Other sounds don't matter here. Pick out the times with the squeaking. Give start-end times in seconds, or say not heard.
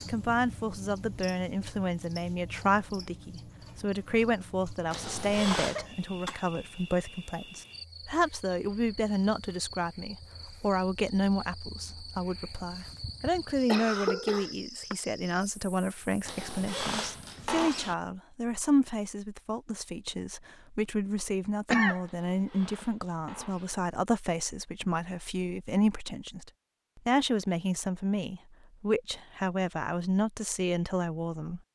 4.9-5.8, 16.2-17.9, 22.1-23.8.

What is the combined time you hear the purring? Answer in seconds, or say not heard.
not heard.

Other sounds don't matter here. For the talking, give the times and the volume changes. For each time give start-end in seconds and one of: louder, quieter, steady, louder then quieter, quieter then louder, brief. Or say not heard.
0.0-31.6 steady.